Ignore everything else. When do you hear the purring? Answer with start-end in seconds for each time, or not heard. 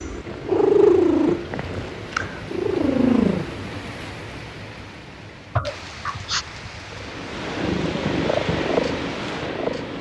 0.0-3.9, 6.9-9.9.